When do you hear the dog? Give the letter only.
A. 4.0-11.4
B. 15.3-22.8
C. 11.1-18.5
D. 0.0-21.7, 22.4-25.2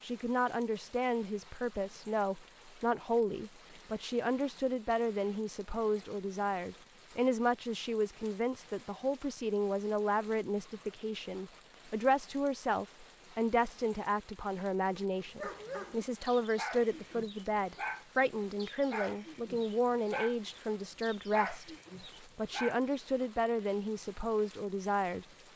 B.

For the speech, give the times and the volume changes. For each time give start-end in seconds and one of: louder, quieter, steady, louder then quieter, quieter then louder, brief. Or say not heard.
0.0-21.7 steady
22.4-25.2 brief.